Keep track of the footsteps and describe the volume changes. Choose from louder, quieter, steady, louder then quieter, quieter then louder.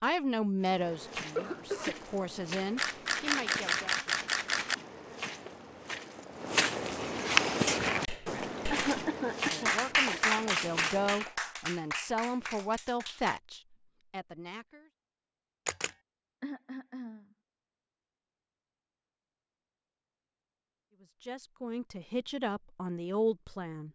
louder then quieter.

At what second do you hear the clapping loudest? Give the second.
10 s.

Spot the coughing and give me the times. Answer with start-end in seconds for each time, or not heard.
1.4-2.0, 8.7-10.2, 16.4-17.2.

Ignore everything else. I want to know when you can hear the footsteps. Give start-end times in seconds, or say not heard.
0.6-11.2.